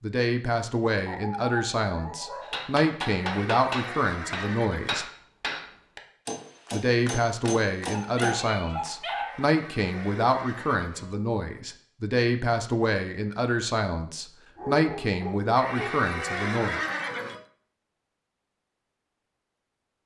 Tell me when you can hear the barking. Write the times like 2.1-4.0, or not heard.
1.1-2.6, 7.9-9.5, 14.6-16.1.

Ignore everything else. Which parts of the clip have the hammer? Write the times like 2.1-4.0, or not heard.
2.4-8.4.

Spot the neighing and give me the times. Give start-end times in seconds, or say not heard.
3.1-5.0, 9.2-11.2, 15.6-17.4.